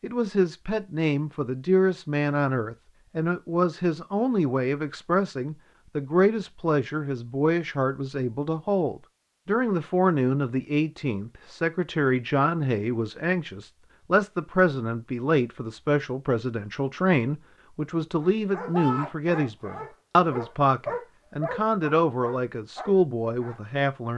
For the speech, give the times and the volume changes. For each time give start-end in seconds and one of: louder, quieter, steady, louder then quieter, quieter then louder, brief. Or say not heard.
0.0-24.1 steady.